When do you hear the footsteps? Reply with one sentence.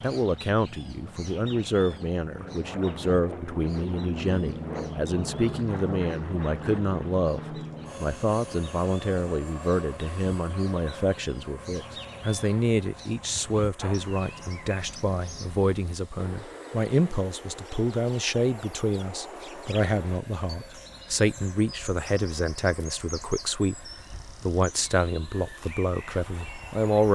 The footsteps can't be heard in this clip.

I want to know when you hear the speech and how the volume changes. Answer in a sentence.
You can hear the speech from 0.0 to 27.0 s, at a steady volume.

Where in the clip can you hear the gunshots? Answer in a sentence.
The gunshots can't be heard in this clip.